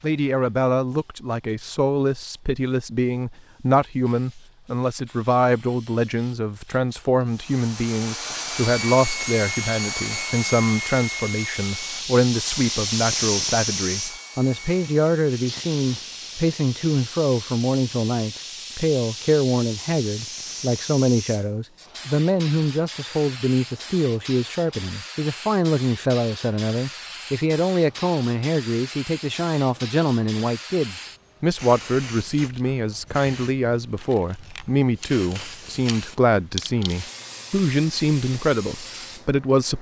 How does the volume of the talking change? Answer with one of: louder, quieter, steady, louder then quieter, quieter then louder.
steady.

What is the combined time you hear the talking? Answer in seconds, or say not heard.
40 s.